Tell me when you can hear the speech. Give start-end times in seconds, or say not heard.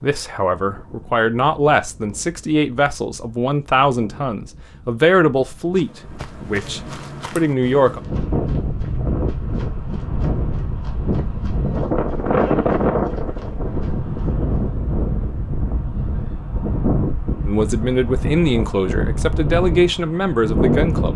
0.0-8.0, 17.4-21.1.